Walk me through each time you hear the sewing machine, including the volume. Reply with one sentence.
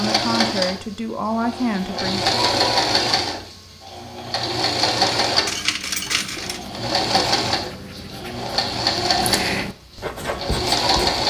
You can hear the sewing machine from 0.0 to 11.2 s, at a steady volume.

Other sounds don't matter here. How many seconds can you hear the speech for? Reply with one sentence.
You can hear the speech for 2 seconds altogether.